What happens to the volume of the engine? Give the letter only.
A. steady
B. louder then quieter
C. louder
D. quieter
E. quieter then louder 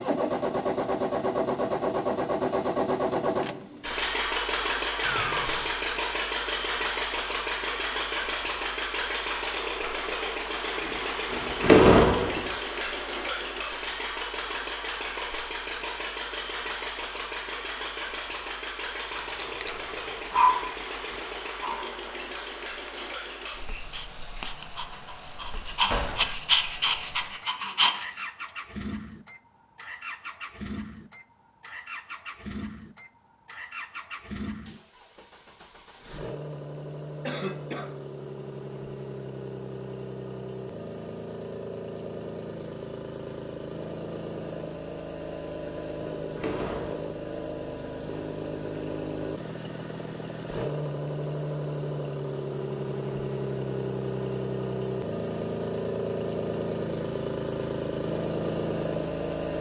E.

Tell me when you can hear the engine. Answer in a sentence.
The engine can be heard from 0.0 to 59.5 s.